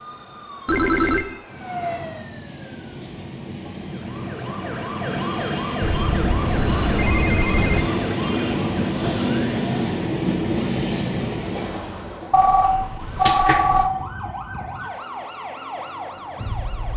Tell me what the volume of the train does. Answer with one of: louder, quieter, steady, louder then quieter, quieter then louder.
louder.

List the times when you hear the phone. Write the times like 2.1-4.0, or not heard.
0.7-1.2, 5.8-7.8, 12.3-13.9.